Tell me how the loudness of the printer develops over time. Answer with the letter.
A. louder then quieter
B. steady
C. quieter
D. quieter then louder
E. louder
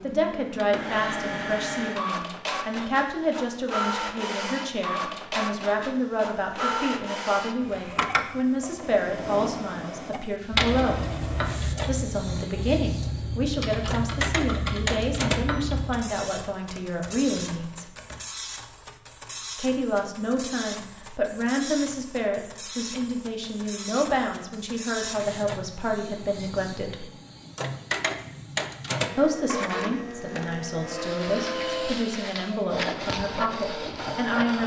D.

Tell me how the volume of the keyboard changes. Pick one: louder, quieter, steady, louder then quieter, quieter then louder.
quieter.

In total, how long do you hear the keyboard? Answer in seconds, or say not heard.
8 s.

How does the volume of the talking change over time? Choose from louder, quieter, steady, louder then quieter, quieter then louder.
steady.